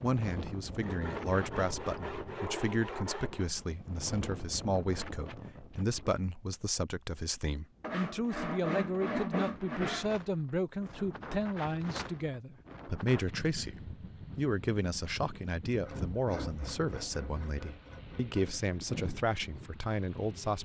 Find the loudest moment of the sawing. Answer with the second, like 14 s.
9 s.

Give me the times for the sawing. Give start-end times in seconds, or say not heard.
0.8-3.5, 7.8-10.2, 15.8-18.6.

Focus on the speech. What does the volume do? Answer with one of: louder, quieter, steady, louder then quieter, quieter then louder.
steady.